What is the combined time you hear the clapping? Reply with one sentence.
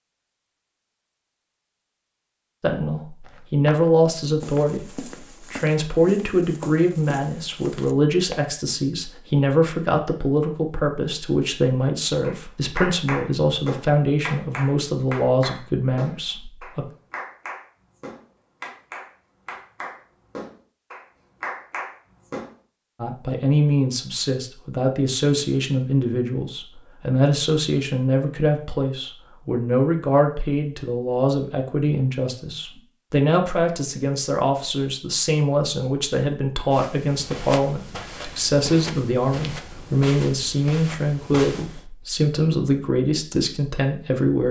The clapping can be heard for 10 seconds in total.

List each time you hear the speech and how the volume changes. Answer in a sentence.
You can hear the speech from 2.6 to 16.9 s, at a steady volume; and from 23.0 to 44.4 s, at a steady volume.